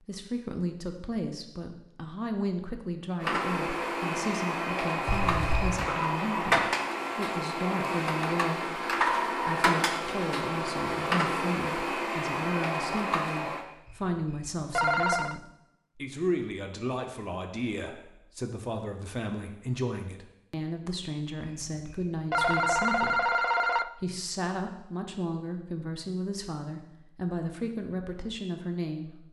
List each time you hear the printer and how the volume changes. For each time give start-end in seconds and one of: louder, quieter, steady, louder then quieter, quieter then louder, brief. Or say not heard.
3.2-13.7 steady.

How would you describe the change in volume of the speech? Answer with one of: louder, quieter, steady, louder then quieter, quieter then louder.
steady.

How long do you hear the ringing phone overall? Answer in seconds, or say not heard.
5 s.